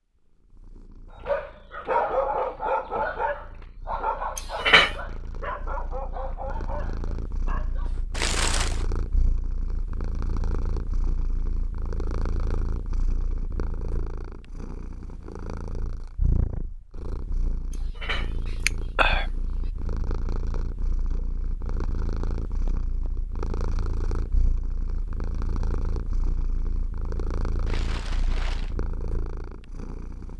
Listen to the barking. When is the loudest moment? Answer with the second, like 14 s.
2 s.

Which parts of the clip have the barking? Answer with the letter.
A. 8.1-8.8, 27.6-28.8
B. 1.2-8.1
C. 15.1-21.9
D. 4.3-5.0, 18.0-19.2
B.